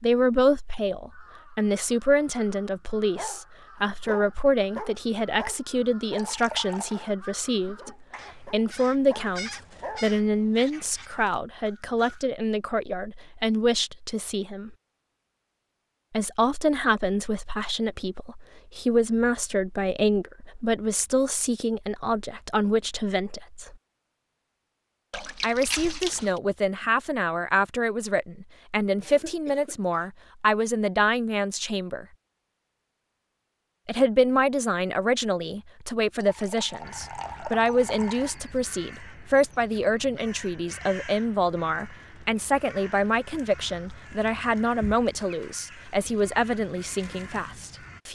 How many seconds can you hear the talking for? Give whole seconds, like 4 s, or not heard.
43 s.